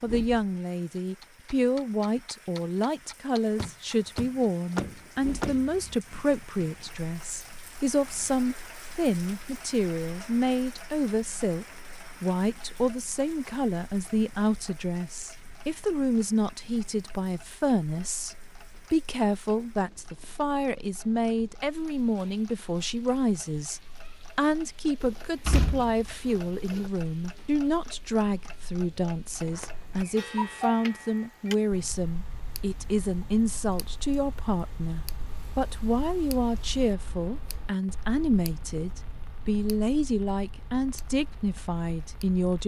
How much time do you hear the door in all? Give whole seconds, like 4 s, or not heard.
5 s.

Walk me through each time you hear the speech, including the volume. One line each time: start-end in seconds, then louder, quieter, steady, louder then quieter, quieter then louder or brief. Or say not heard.
0.0-42.6 steady.